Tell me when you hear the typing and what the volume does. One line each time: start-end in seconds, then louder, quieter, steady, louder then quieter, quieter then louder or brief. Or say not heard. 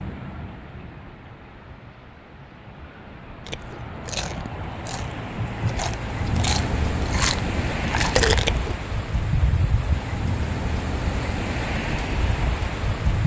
not heard.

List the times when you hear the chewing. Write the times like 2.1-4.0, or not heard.
3.5-8.8.